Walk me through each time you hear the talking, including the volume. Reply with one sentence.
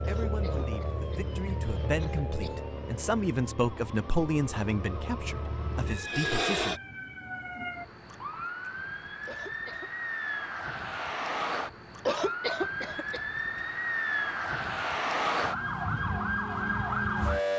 You can hear the talking from 0.1 to 6.8 s, getting louder then quieter.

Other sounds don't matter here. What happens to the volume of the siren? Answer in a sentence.
The volume of the siren goes up.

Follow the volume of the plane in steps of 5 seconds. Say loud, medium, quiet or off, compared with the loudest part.
medium, loud, off, off.